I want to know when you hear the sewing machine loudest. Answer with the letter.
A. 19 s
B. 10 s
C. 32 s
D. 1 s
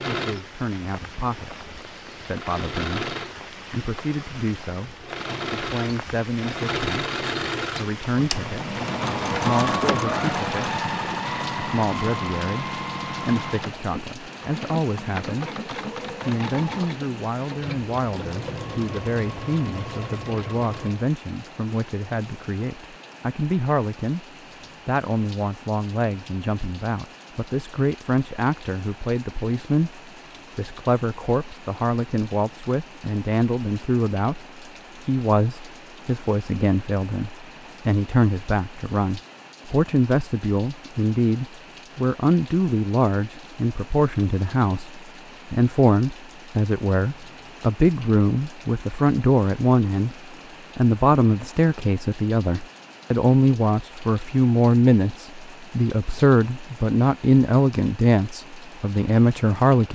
B.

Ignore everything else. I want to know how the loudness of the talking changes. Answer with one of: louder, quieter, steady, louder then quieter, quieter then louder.
louder.